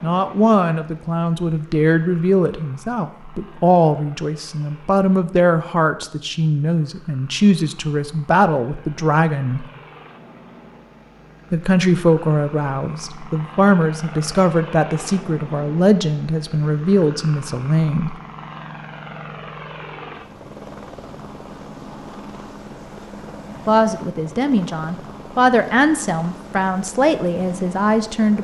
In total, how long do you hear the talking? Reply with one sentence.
The talking can be heard for 21 seconds in total.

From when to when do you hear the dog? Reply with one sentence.
You can't hear the dog here.